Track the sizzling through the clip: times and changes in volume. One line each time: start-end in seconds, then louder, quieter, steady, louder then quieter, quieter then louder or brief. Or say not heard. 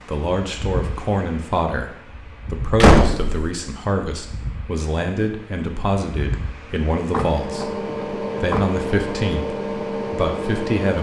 not heard.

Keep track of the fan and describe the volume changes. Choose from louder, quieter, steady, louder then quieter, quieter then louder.
louder.